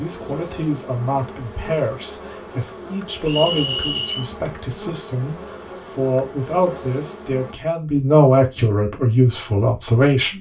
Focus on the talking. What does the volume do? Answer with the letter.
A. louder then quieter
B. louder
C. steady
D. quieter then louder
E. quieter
B.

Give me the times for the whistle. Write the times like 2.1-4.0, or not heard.
3.2-4.2.